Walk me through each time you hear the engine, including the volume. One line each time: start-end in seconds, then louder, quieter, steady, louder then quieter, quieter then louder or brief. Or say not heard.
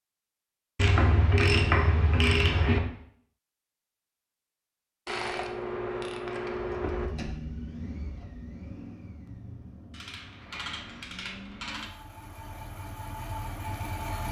6.5-14.2 quieter then louder.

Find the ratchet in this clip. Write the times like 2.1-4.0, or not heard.
0.8-2.8, 5.0-7.1, 9.9-11.9.